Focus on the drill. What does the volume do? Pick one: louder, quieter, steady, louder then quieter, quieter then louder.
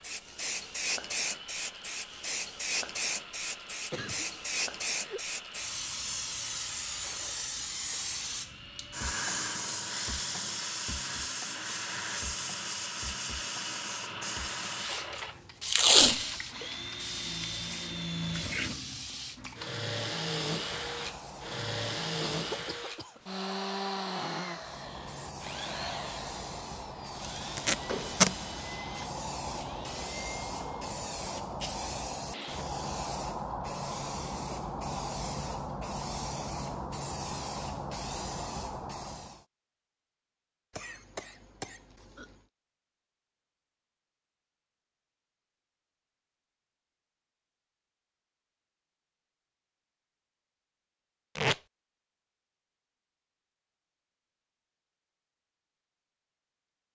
louder then quieter.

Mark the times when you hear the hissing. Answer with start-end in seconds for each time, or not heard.
0.0-22.9, 24.4-39.5.